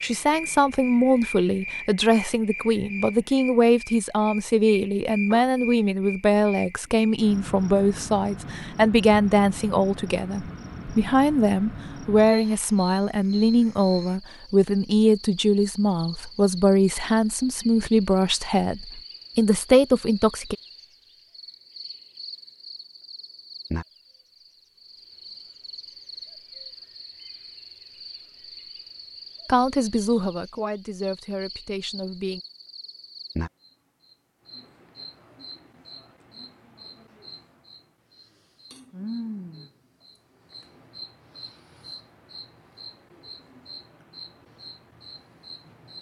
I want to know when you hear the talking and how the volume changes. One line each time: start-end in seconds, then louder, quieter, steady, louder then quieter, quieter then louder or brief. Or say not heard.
0.0-20.6 steady
29.4-32.4 brief.